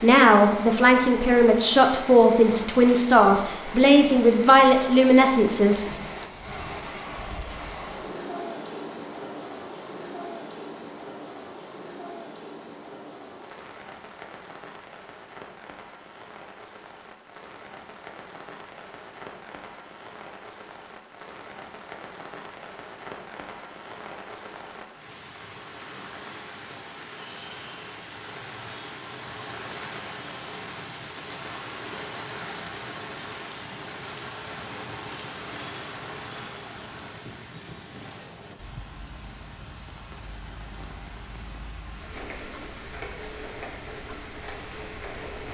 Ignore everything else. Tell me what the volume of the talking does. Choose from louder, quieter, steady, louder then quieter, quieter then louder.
steady.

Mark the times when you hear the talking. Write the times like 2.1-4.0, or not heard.
0.0-5.8.